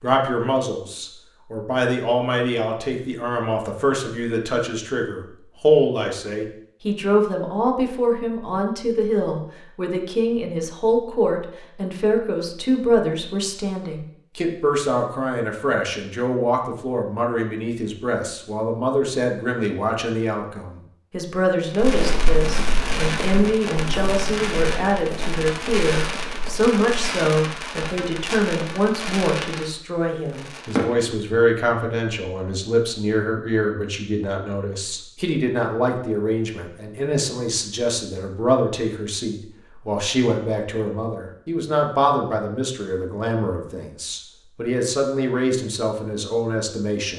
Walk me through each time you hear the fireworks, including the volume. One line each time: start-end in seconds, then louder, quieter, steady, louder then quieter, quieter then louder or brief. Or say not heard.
21.6-30.9 steady.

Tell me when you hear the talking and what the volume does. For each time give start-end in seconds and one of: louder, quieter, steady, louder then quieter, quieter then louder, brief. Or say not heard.
0.0-47.1 steady.